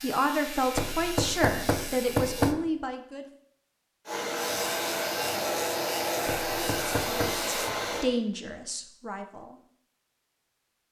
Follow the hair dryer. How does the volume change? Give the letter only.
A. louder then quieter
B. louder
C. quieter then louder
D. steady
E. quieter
D.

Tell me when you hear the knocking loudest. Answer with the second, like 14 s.
2 s.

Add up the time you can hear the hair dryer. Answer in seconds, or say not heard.
4 s.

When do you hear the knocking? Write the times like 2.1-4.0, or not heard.
0.8-2.5, 6.2-7.5.